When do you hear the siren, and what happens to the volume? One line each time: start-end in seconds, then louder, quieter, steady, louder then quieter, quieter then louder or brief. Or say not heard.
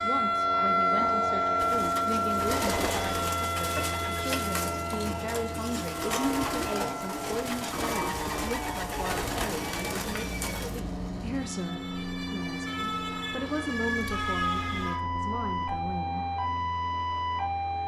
0.0-17.8 quieter then louder.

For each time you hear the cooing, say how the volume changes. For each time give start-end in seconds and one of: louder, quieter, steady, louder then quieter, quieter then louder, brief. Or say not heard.
1.6-10.8 steady.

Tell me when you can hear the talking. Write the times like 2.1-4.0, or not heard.
0.0-16.2.